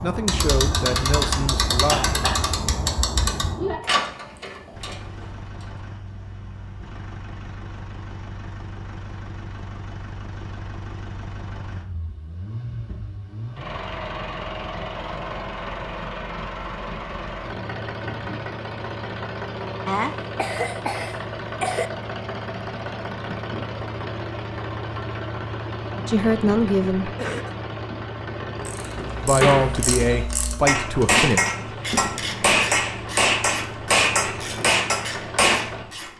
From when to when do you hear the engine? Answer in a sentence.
The engine can be heard from 4.7 to 36.1 s.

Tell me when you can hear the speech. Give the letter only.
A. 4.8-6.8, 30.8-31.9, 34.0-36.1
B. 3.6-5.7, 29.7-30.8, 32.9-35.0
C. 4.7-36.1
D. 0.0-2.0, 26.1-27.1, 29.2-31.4
D.